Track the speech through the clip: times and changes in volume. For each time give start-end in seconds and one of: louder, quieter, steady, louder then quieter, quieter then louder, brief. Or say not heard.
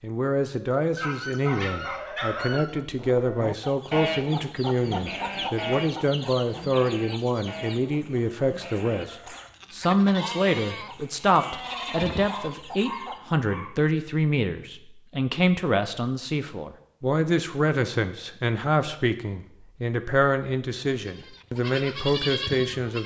0.0-23.0 steady.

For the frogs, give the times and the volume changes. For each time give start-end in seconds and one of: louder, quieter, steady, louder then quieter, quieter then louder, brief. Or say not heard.
not heard.